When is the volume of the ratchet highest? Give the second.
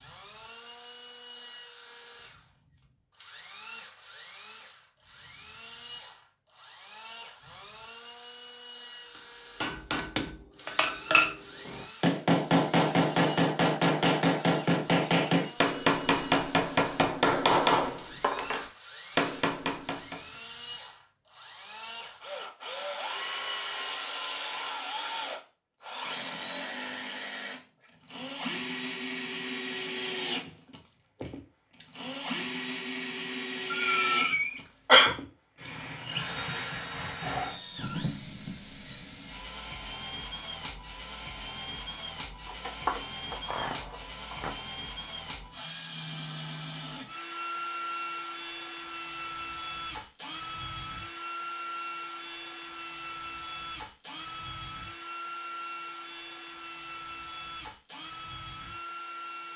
43 s.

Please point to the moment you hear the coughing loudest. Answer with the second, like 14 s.
35 s.